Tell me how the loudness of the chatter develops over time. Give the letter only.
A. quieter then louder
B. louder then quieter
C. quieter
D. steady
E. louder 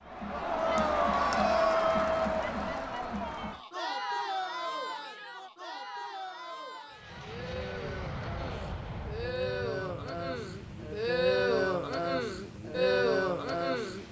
A.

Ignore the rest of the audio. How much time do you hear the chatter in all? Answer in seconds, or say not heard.
14 s.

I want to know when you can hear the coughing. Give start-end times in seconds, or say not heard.
not heard.